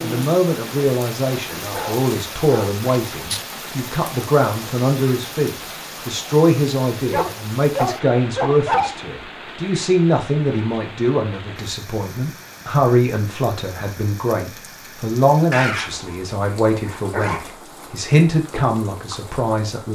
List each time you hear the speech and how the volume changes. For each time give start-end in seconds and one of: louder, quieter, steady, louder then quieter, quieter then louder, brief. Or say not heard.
0.0-19.9 steady.